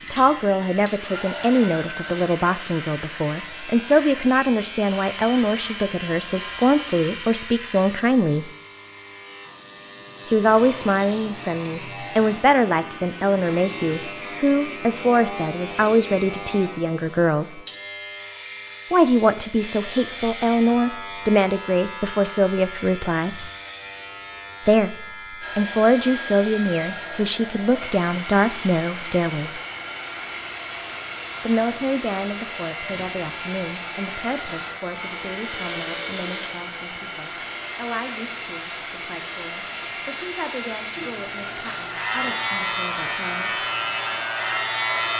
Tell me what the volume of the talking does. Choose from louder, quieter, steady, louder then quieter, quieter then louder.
quieter.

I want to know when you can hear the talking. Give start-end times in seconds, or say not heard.
0.1-8.5, 10.2-17.6, 18.9-23.5, 24.6-29.6, 31.4-43.6.